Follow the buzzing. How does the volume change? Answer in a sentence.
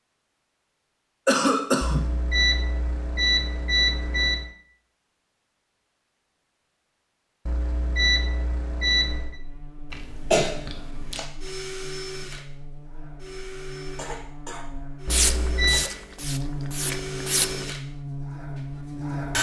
The loudness of the buzzing goes up.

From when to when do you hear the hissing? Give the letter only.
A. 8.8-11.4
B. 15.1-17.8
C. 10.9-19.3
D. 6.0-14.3
B.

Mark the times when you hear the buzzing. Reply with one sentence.
The buzzing can be heard from 9.1 to 19.3 s.